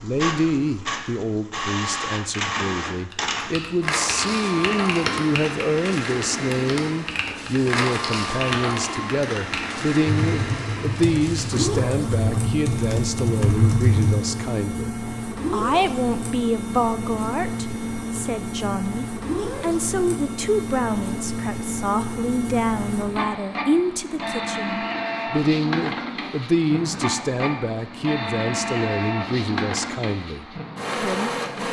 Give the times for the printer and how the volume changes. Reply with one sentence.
You can hear the printer from 0.0 to 31.6 s, at a steady volume.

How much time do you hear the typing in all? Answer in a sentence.
You can hear the typing for 11 seconds altogether.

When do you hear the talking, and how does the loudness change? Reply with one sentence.
You can hear the talking from 0.0 to 31.3 s, at a steady volume.